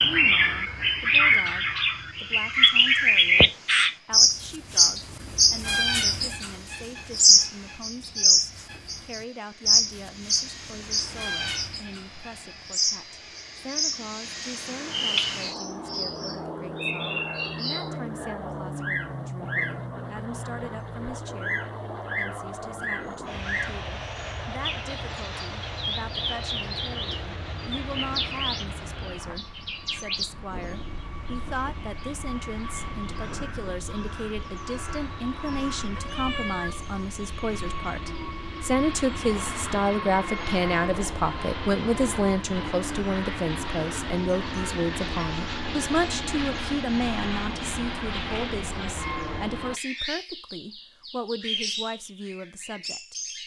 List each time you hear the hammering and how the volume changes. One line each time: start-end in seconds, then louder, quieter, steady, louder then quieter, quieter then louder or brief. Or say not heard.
not heard.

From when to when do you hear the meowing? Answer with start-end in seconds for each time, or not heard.
36.0-37.0.